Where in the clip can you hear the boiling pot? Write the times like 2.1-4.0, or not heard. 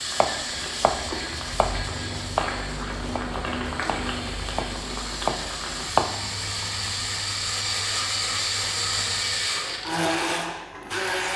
0.0-11.3.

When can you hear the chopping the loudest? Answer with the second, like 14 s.
6 s.